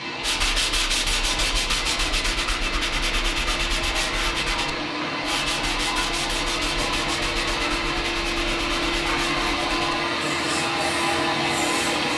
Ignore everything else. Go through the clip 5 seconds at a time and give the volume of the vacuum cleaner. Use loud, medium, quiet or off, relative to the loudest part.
medium, loud, loud.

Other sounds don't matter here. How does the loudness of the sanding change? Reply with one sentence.
The volume of the sanding goes down.